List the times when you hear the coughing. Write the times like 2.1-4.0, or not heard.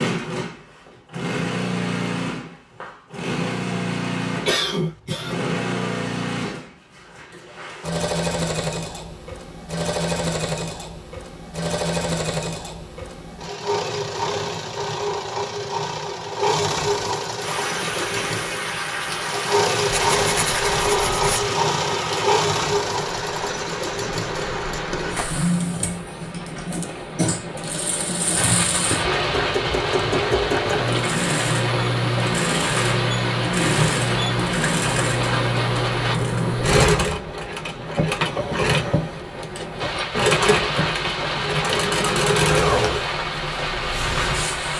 4.5-5.4.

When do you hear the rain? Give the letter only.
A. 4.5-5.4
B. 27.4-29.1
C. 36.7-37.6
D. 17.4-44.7
D.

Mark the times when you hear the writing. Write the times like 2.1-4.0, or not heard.
19.9-21.5.